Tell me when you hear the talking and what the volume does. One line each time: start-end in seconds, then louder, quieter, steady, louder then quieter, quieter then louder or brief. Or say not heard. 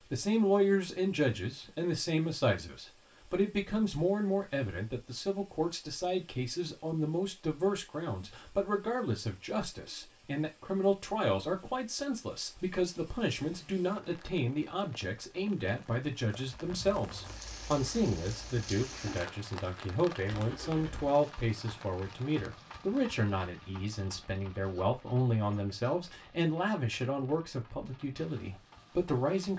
0.0-29.5 steady.